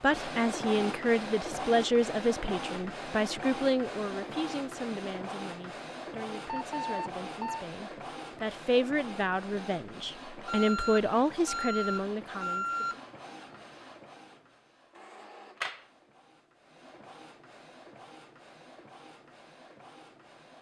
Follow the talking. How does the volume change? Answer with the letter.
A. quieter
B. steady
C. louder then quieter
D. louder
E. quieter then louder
E.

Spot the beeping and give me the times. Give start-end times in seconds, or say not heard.
6.5-7.7, 10.4-13.0.